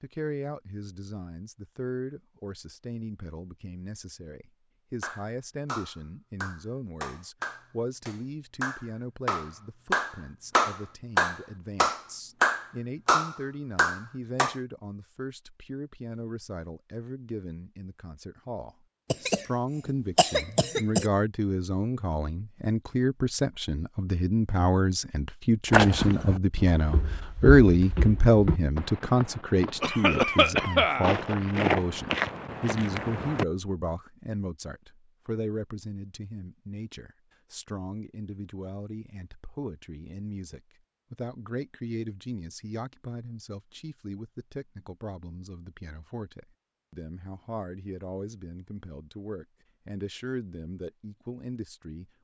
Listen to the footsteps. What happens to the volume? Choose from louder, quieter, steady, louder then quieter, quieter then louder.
quieter then louder.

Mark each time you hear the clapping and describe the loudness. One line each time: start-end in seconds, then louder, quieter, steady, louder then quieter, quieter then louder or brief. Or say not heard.
5.0-14.6 louder.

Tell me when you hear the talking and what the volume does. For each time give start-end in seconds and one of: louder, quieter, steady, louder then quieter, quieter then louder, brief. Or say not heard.
0.0-52.1 louder then quieter.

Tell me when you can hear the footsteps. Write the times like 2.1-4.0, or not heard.
25.7-33.5.